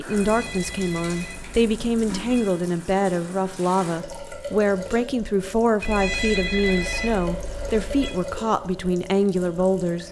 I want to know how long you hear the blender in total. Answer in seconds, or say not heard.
not heard.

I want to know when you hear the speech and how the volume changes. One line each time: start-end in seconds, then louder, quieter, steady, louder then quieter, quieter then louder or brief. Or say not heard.
0.0-10.0 steady.